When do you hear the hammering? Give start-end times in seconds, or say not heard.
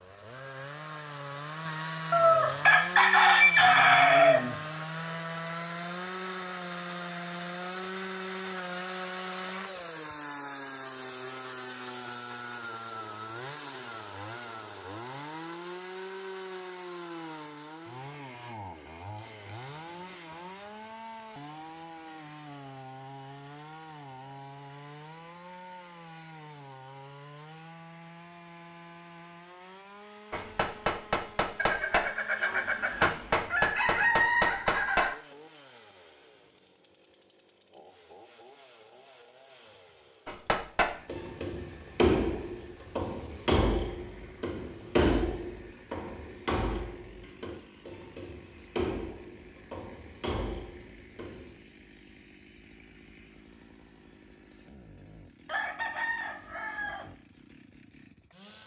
30.3-35.1, 40.2-51.5.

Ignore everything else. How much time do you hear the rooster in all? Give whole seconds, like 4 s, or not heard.
8 s.